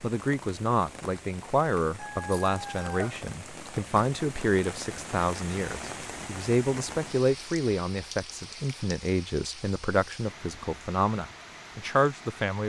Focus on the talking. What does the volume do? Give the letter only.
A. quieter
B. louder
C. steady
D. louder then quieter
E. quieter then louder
C.